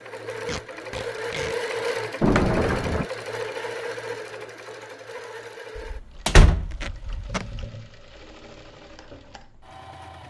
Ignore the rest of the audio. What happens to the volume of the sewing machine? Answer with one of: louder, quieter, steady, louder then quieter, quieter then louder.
quieter.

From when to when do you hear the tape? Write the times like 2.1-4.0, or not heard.
0.5-1.6, 6.5-7.5.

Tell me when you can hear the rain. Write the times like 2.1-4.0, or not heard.
not heard.